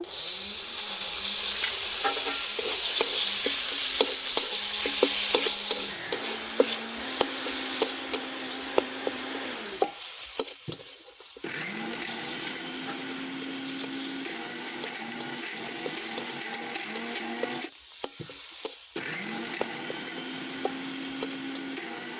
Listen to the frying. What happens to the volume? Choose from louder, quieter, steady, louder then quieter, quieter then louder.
quieter.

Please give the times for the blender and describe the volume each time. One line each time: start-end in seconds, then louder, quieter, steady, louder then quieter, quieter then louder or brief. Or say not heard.
0.0-22.1 steady.